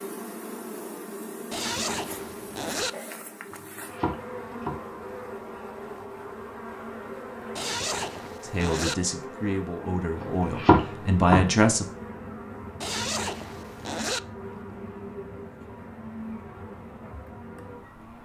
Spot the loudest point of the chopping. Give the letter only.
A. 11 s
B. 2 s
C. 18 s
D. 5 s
A.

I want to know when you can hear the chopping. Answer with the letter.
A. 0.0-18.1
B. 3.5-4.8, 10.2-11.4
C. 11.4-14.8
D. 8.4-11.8
B.